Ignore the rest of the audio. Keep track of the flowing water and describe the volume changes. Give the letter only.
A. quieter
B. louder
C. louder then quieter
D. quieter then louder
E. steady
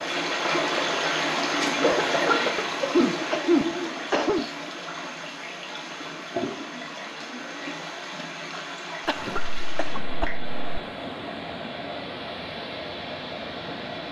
A.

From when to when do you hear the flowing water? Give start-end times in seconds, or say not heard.
0.0-14.0.